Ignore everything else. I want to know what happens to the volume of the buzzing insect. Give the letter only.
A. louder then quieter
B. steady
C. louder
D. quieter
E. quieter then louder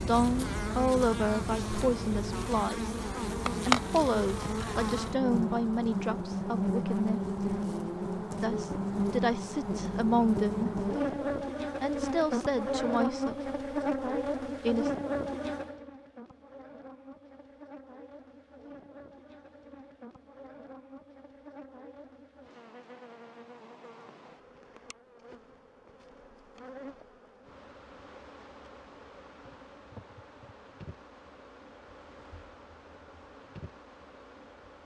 D.